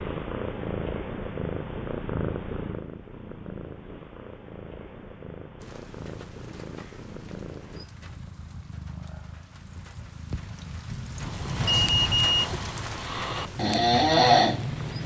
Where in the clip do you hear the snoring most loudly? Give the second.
14 s.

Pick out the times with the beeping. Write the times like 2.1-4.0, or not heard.
11.7-12.5.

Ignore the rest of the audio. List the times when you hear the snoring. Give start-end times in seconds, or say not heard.
11.2-15.0.